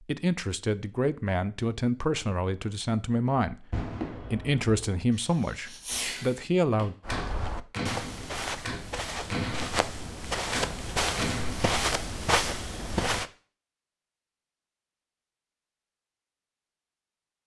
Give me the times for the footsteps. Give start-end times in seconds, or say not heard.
7.0-13.3.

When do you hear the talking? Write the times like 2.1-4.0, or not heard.
0.1-7.0.